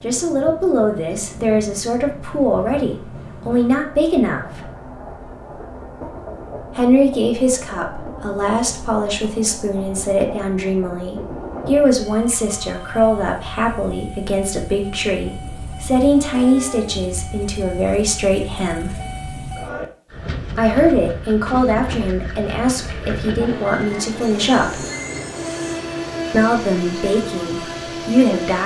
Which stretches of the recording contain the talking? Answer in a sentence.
You can hear the talking from 0.0 to 4.4 s, from 6.8 to 19.0 s, from 20.6 to 24.9 s and from 26.3 to 28.6 s.